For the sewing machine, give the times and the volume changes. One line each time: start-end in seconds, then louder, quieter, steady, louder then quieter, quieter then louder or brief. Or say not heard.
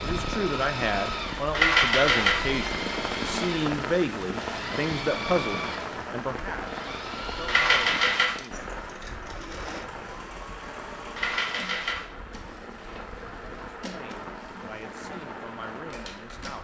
0.0-16.5 quieter.